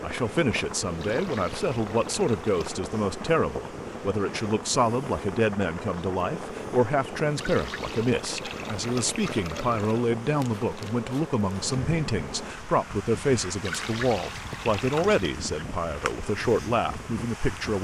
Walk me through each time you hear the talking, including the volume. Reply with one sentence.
You can hear the talking from 0.0 to 17.7 s, at a steady volume.